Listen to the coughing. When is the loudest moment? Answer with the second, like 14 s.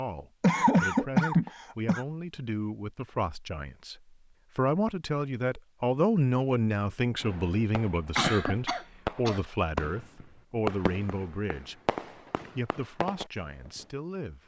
1 s.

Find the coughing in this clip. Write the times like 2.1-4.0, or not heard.
0.4-2.0, 8.2-9.4.